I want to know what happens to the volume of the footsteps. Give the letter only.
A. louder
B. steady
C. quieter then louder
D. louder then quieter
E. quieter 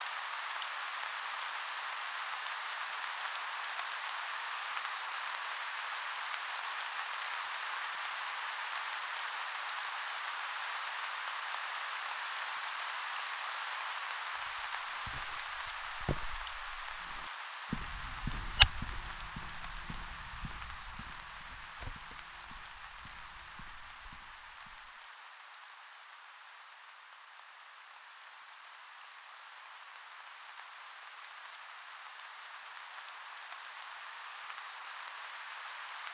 D.